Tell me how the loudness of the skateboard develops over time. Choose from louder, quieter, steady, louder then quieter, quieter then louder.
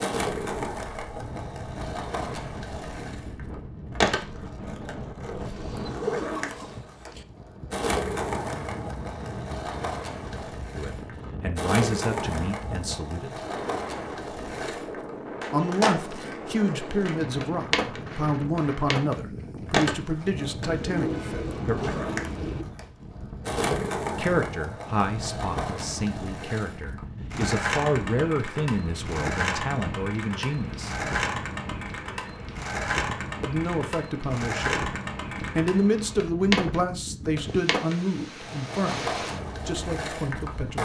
steady.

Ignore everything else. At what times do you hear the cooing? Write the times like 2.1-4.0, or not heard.
5.3-7.2, 20.6-22.6.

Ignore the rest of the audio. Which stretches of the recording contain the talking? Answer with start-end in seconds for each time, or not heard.
10.8-13.4, 15.5-21.8, 24.1-30.9, 33.4-40.8.